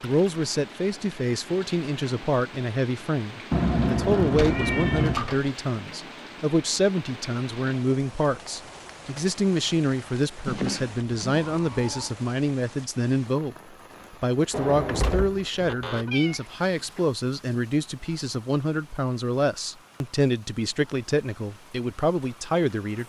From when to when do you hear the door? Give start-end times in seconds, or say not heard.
4.2-5.5, 14.5-16.1.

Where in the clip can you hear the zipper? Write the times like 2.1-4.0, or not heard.
not heard.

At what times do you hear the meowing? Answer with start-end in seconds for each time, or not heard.
3.5-5.2, 10.4-12.1, 16.1-17.1.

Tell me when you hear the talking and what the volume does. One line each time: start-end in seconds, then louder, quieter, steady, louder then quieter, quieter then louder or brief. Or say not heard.
0.0-23.0 steady.